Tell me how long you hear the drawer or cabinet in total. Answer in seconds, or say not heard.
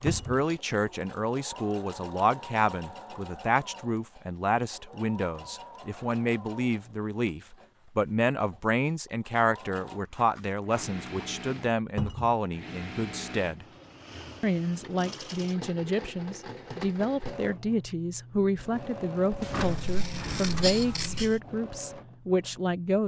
2 s.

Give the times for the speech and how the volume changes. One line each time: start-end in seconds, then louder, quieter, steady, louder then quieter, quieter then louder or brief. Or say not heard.
0.0-13.7 steady
14.4-23.0 steady.